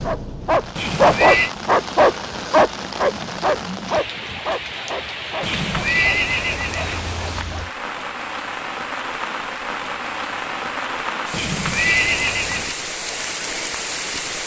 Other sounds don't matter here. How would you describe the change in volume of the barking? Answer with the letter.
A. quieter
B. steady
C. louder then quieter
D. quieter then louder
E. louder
A.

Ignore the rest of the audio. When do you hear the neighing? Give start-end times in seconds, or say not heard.
0.8-1.5, 5.4-7.5, 11.3-12.8.